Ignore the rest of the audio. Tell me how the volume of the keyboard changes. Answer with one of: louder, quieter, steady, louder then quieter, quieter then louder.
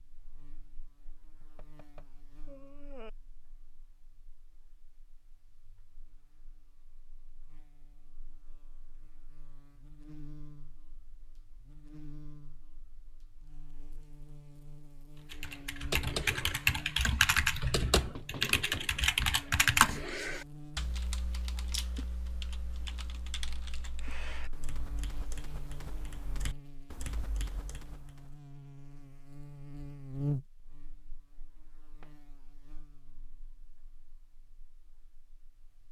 quieter.